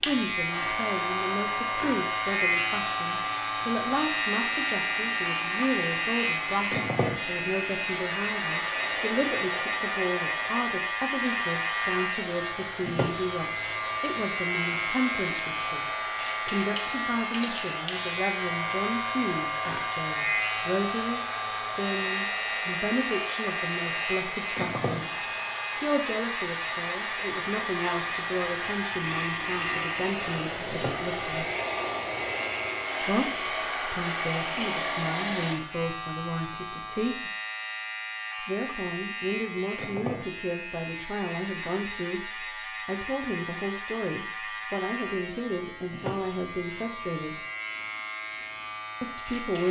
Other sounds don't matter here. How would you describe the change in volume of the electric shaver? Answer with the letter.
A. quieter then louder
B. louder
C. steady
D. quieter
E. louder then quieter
D.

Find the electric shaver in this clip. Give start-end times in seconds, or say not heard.
0.0-49.6.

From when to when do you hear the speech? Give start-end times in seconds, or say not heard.
0.1-31.5, 33.0-37.3, 38.4-47.4, 49.0-49.6.